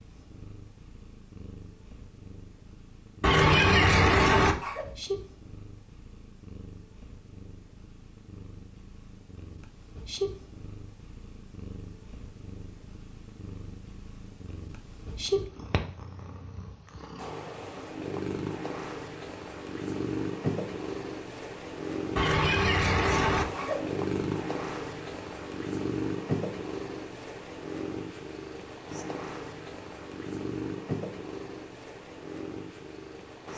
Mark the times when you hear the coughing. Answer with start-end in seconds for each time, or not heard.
3.2-4.8, 22.1-23.8.